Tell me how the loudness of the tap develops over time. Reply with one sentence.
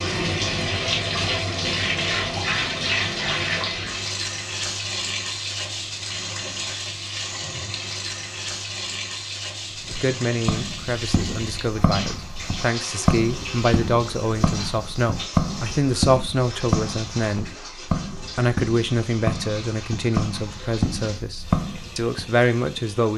The volume of the tap goes down.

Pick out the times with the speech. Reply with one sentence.
The speech can be heard from 10.0 to 17.5 s and from 18.4 to 23.1 s.